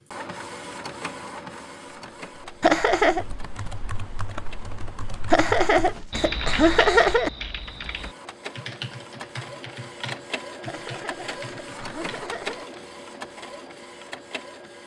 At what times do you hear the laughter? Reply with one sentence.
You can hear the laughter from 2.6 to 3.2 s, from 5.3 to 7.3 s and from 10.7 to 12.7 s.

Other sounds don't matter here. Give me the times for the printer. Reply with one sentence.
The printer can be heard from 0.1 to 6.2 s and from 7.7 to 14.8 s.